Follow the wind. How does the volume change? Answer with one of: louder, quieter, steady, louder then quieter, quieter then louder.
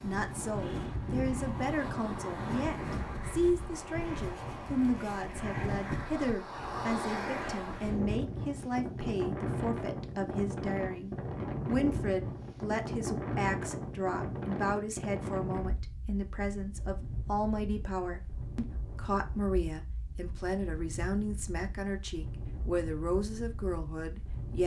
quieter.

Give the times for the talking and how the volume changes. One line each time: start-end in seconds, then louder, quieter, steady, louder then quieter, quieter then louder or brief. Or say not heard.
0.0-24.6 steady.